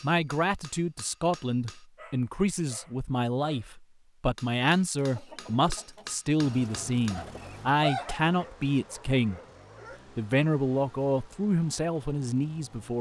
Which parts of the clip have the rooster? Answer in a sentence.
The rooster can be heard from 5.0 to 8.2 s.